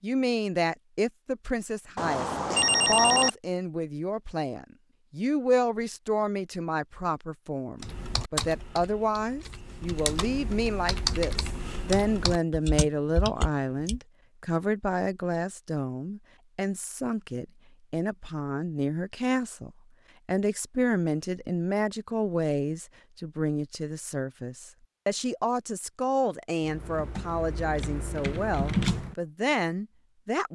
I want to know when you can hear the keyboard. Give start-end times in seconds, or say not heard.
7.8-14.0, 26.6-29.1.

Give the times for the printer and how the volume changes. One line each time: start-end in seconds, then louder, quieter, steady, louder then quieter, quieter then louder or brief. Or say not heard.
not heard.